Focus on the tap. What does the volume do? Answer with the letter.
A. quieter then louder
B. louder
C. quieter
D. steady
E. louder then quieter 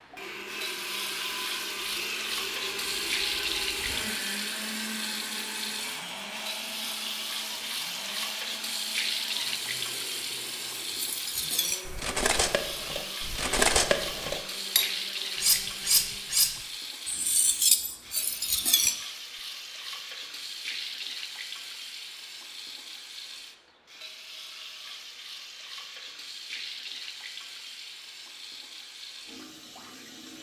C.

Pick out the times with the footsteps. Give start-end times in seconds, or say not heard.
not heard.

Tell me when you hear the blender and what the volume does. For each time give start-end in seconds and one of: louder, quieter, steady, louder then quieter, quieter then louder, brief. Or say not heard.
0.0-16.4 quieter.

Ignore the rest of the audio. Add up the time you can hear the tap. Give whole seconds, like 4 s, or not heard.
30 s.